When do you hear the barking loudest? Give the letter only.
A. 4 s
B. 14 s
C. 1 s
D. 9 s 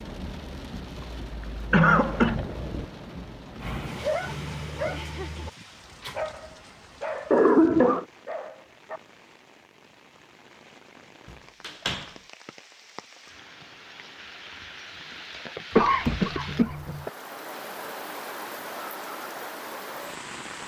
A.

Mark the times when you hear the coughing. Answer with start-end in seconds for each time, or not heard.
1.7-2.4, 7.3-8.1, 15.8-17.1.